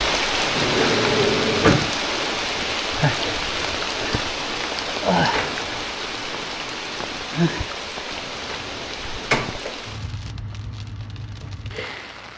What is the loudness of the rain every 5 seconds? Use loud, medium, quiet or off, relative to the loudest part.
loud, loud, quiet.